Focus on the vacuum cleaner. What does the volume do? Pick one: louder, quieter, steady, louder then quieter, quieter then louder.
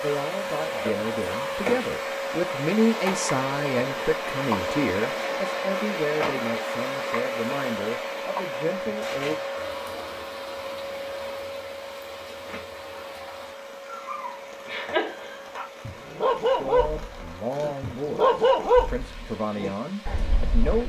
quieter.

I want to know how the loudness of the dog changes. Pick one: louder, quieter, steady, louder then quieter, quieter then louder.
louder then quieter.